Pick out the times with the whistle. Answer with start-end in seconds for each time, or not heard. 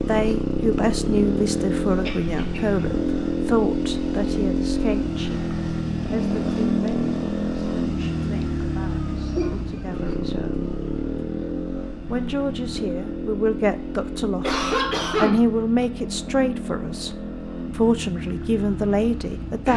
not heard.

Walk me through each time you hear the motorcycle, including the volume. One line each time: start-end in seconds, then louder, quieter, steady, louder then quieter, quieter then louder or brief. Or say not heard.
0.0-19.7 quieter.